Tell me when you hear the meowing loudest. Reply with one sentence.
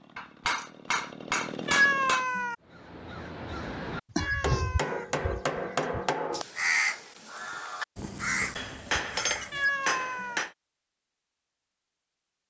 The volume of the meowing peaks at 2 seconds.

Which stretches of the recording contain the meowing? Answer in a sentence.
You can hear the meowing from 1.6 to 2.5 s, from 4.2 to 5.0 s and from 9.5 to 10.4 s.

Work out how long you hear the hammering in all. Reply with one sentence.
You can hear the hammering for 6 seconds altogether.